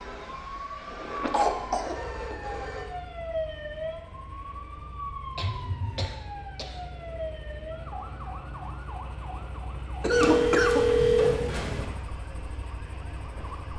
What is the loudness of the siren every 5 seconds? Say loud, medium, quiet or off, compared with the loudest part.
loud, loud, medium.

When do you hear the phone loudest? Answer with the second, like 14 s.
11 s.